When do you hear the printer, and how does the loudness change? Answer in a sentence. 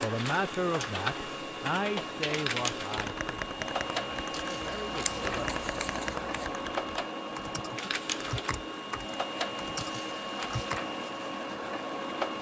The printer can be heard from 0.0 to 12.3 s, at a steady volume.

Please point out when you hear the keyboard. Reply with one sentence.
You can hear the keyboard from 1.6 to 10.8 s.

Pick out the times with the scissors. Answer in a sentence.
The scissors can be heard from 4.6 to 6.5 s.